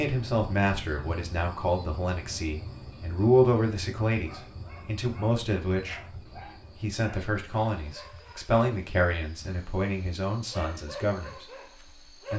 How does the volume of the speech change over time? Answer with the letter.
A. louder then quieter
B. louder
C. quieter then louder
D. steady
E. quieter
A.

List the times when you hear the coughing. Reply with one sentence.
You can't hear the coughing here.